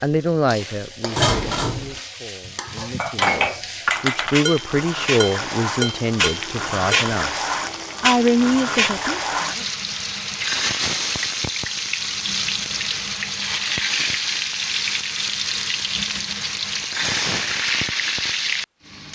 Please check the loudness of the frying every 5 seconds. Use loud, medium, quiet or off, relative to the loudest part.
medium, loud, loud, loud.